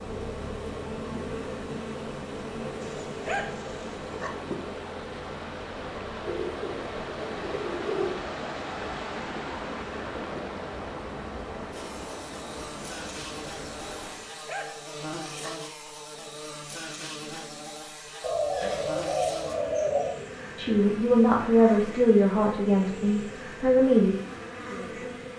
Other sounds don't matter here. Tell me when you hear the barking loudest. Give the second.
3 s.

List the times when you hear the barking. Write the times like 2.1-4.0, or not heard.
2.8-4.3, 14.0-15.5.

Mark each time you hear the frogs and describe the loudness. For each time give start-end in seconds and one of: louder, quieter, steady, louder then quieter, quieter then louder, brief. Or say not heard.
not heard.